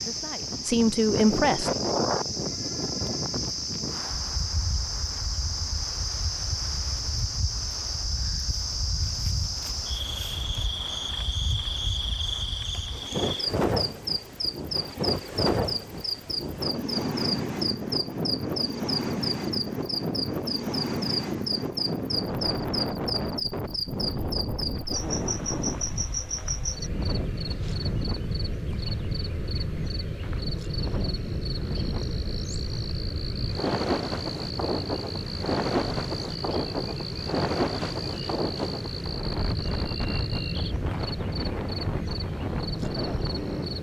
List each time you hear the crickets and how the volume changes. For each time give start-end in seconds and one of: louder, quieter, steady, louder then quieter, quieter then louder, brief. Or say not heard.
0.0-43.7 steady.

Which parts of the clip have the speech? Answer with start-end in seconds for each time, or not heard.
0.0-1.7.